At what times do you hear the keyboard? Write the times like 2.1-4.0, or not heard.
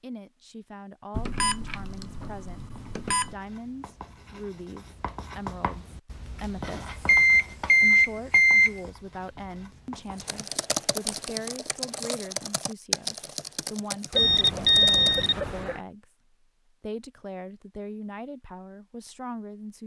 10.2-15.3.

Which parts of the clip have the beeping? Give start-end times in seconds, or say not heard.
1.1-3.4, 7.0-8.8, 14.1-15.8.